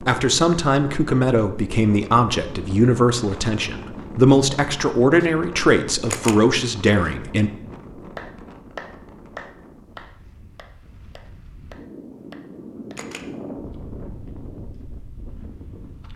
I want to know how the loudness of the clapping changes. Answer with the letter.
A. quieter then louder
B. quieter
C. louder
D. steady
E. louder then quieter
A.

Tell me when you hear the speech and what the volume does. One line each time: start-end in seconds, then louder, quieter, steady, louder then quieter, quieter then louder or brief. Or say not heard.
0.1-7.5 steady.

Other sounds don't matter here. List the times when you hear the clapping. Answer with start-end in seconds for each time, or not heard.
8.2-13.0.